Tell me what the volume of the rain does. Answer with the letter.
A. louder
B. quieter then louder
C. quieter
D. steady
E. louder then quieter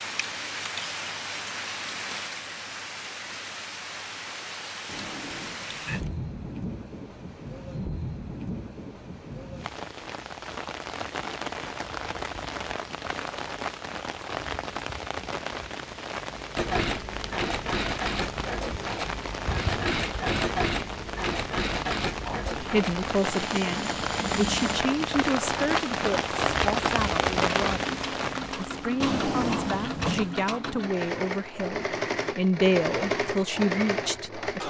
A.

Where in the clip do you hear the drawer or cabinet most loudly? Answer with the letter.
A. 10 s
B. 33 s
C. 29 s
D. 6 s
C.